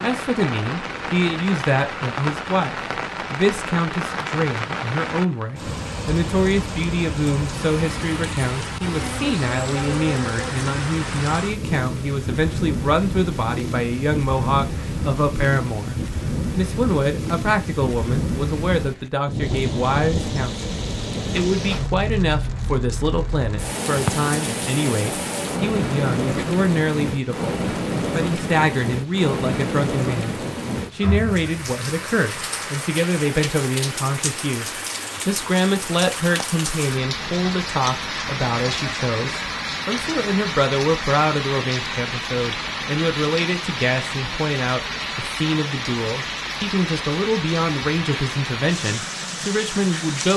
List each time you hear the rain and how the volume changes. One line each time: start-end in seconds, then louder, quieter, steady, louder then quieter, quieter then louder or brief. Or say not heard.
0.0-50.3 steady.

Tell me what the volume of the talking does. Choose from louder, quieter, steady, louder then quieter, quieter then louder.
steady.